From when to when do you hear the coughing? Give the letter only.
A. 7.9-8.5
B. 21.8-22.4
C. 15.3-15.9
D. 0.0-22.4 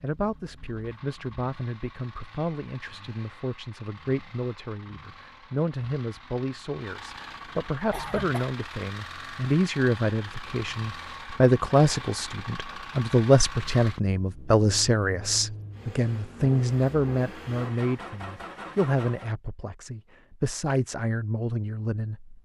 A.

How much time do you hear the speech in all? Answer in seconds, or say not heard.
22 s.